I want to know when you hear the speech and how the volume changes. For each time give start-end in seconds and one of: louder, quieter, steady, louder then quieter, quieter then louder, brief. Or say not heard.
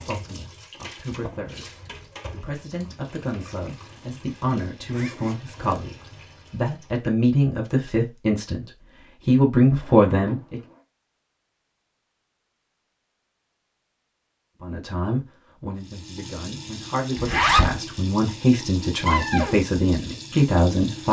0.0-10.6 louder
14.6-21.0 louder.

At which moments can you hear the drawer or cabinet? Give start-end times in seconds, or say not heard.
1.1-2.1, 9.8-10.8, 19.1-19.6.